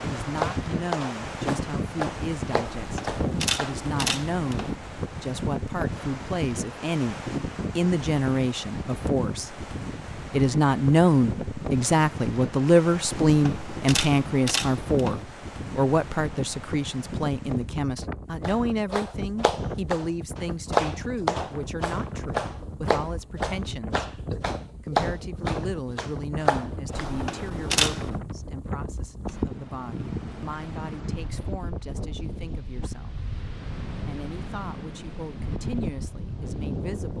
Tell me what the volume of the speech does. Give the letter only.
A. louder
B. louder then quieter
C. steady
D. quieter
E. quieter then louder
B.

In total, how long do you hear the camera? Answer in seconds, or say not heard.
5 s.